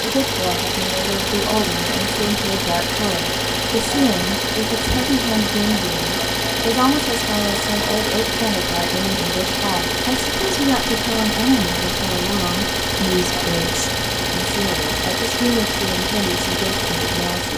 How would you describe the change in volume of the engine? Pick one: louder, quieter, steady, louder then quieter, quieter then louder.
steady.